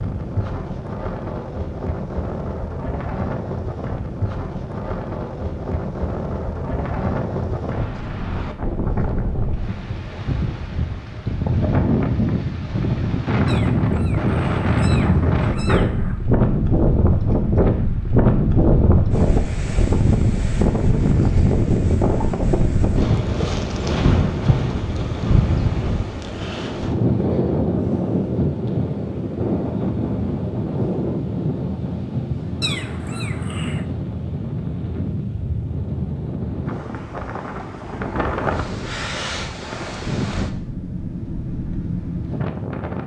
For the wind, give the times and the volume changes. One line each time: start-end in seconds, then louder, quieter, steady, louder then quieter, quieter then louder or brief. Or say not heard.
0.0-43.0 louder then quieter.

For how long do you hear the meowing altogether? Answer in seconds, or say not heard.
4 s.